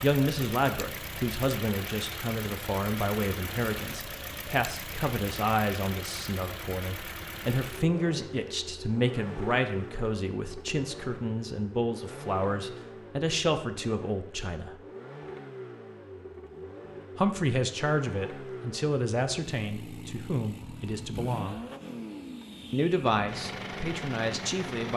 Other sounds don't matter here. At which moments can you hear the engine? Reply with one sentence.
You can hear the engine from 0.0 to 24.9 s.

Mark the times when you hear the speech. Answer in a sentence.
The speech can be heard from 0.0 to 14.8 s, from 17.1 to 21.6 s and from 22.7 to 24.9 s.